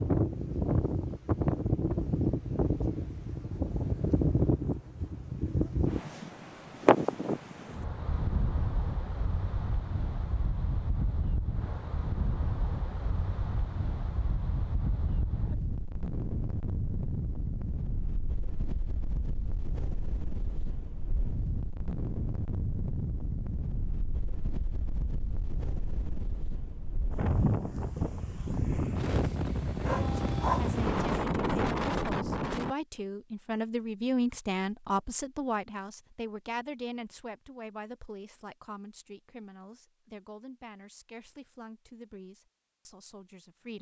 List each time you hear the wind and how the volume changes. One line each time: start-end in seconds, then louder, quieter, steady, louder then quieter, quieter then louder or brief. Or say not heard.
0.0-32.8 quieter then louder.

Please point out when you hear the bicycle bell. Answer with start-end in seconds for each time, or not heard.
not heard.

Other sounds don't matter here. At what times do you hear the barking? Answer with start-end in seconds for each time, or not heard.
29.8-31.2.